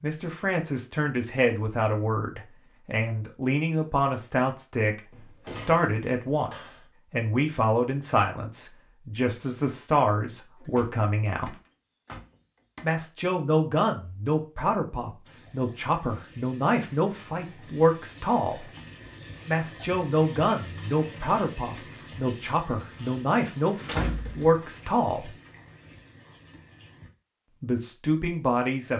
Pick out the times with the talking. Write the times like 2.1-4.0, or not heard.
0.0-11.6, 12.8-18.6, 19.4-25.3, 27.6-28.9.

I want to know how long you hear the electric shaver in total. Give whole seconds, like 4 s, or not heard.
not heard.